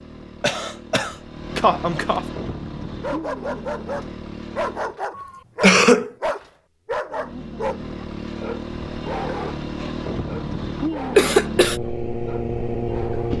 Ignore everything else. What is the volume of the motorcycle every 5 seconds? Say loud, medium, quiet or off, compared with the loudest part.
medium, medium, loud.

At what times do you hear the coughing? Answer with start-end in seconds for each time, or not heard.
0.4-2.2, 5.2-6.1, 11.2-11.8.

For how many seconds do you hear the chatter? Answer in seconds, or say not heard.
not heard.